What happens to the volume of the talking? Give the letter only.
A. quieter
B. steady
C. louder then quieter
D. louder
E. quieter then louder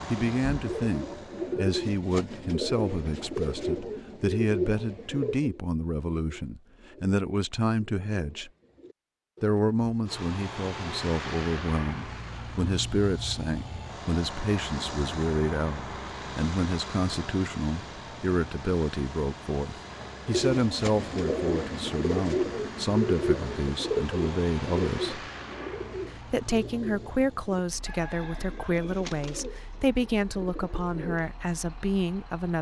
B.